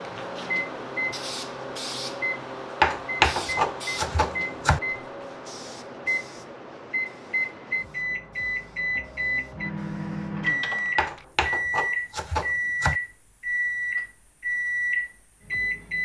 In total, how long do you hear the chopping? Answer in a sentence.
The chopping can be heard for 4 seconds in total.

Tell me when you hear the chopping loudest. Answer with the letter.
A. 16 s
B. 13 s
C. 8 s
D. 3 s
D.